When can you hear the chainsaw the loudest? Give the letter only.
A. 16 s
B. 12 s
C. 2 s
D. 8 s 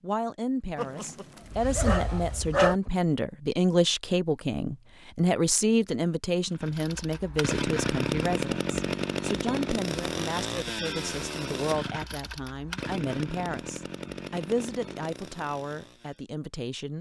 D.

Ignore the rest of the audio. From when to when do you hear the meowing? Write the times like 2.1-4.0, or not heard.
not heard.